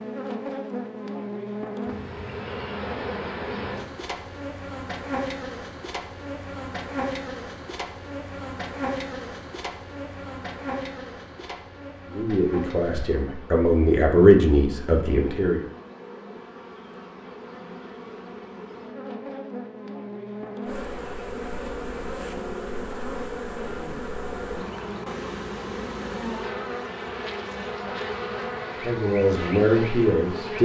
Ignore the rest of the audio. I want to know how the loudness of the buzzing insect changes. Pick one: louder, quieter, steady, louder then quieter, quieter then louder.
quieter then louder.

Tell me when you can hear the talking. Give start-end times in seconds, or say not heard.
12.1-15.7, 28.8-30.6.